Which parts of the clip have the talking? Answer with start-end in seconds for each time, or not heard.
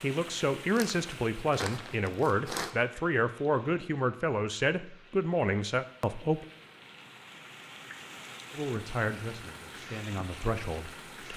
0.0-6.5, 8.5-11.3.